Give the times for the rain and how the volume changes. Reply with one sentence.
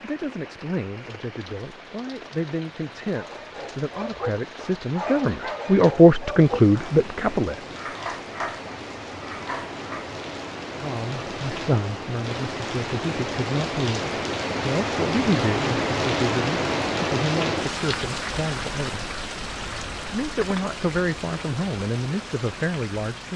The rain can be heard from 0.0 to 23.3 s, getting louder then quieter.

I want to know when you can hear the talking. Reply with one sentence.
You can hear the talking from 0.0 to 7.6 s and from 10.8 to 23.3 s.